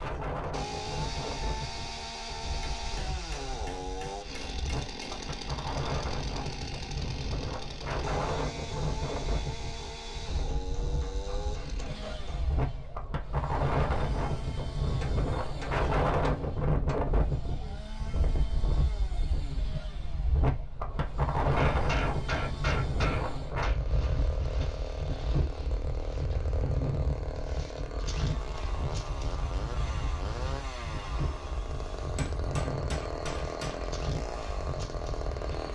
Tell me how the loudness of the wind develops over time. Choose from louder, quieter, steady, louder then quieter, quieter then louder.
louder then quieter.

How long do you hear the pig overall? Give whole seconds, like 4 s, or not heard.
not heard.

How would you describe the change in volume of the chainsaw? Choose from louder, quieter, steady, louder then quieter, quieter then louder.
quieter then louder.